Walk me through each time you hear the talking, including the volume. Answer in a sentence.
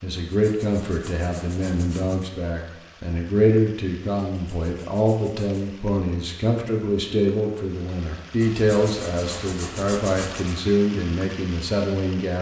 The talking can be heard from 0.0 to 12.3 s, at a steady volume.